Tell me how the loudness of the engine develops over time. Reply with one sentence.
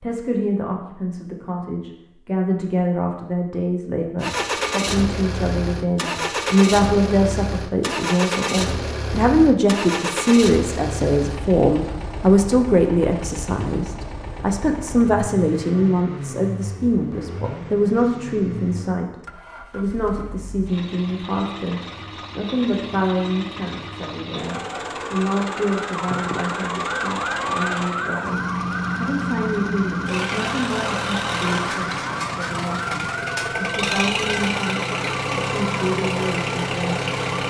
The loudness of the engine goes down, then up.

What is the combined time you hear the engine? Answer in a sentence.
The engine can be heard for 33 seconds in total.